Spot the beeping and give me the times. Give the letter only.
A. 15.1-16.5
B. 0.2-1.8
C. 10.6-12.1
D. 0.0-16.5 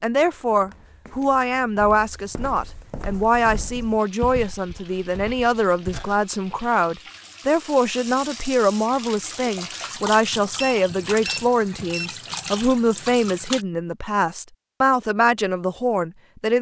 C.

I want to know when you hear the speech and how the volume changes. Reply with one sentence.
The speech can be heard from 0.0 to 16.5 s, at a steady volume.